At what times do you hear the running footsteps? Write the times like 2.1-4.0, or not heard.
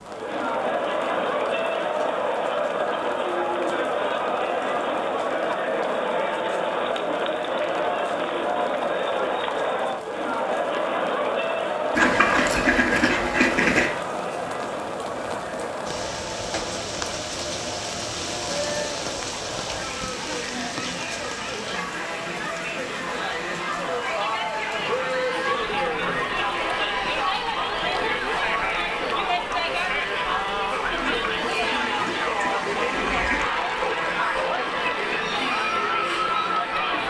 not heard.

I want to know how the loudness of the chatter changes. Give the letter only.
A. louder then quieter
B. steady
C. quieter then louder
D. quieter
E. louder
C.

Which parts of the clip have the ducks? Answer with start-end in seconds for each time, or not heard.
11.9-13.9, 30.9-33.5.